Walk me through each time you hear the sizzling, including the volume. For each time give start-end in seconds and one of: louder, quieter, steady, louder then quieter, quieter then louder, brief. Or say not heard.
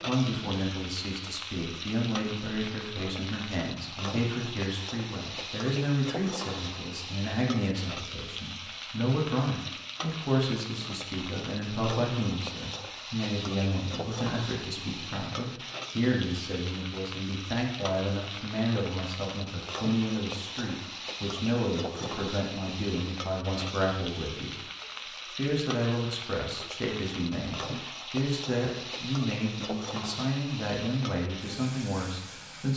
0.0-32.7 steady.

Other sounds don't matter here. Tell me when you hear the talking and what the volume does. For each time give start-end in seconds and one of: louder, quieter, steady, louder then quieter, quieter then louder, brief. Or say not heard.
0.1-24.6 steady
25.1-32.7 steady.